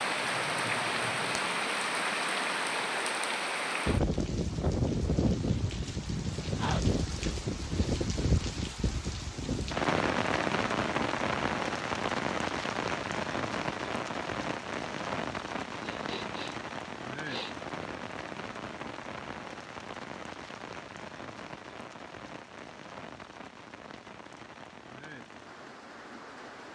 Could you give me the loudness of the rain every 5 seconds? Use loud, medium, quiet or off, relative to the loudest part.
loud, loud, loud, medium, quiet, quiet.